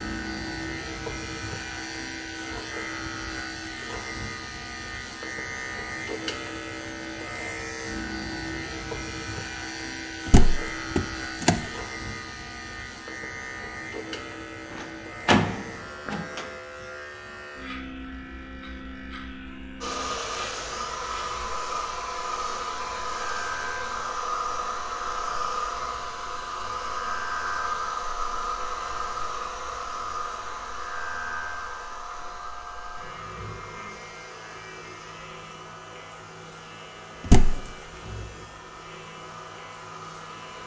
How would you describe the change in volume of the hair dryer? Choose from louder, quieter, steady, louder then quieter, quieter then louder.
quieter.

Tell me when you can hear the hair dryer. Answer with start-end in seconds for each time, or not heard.
19.8-40.6.